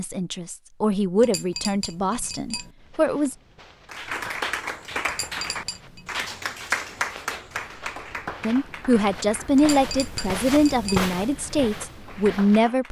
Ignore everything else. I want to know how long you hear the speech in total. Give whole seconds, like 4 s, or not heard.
8 s.